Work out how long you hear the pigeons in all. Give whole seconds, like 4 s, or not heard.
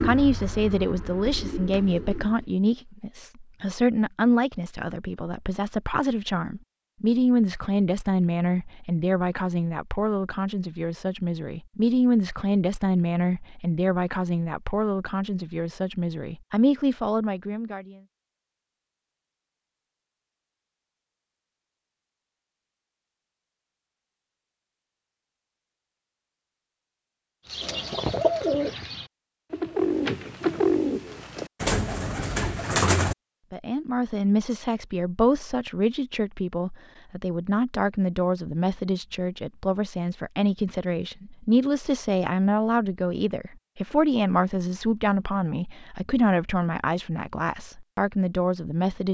8 s.